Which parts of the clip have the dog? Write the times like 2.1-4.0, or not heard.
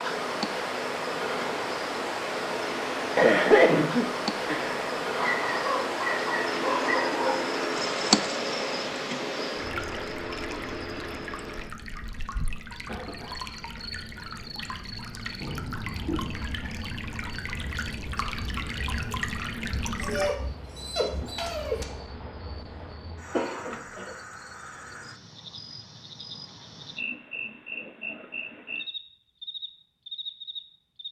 5.2-7.5, 20.0-21.9.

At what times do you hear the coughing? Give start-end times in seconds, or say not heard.
3.1-4.8, 12.8-13.8, 23.3-24.1.